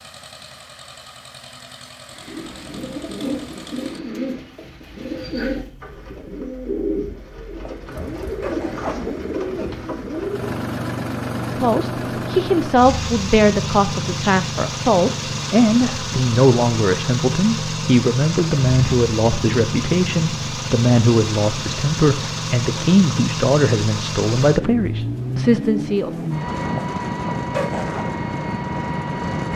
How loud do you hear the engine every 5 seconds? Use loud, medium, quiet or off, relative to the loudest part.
quiet, quiet, loud, loud, loud, loud.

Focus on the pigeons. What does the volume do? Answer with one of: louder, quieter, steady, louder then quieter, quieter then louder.
steady.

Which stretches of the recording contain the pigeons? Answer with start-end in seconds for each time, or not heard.
2.1-10.6.